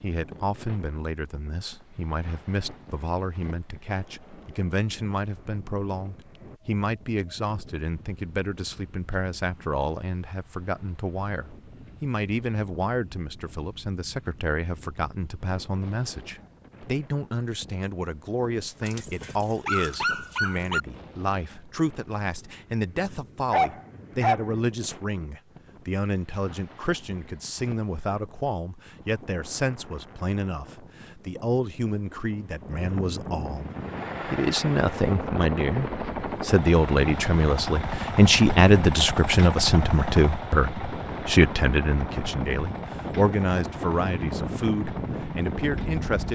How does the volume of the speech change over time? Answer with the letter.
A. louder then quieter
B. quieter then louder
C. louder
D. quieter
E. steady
C.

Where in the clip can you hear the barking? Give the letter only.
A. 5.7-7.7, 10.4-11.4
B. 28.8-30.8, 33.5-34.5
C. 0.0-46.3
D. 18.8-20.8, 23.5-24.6
D.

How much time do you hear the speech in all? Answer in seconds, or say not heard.
46 s.